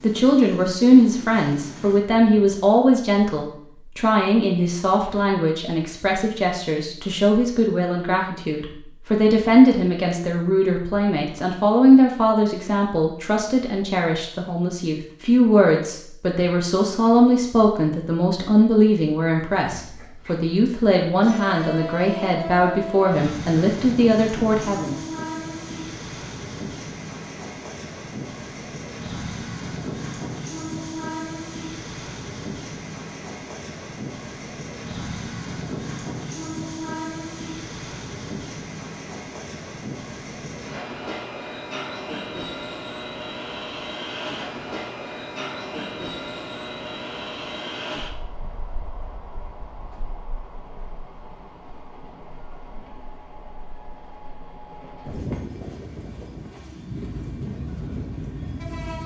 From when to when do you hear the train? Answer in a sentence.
You can hear the train from 0.0 to 2.5 s and from 19.6 to 59.0 s.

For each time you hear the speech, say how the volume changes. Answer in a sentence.
The speech can be heard from 0.0 to 24.9 s, at a steady volume.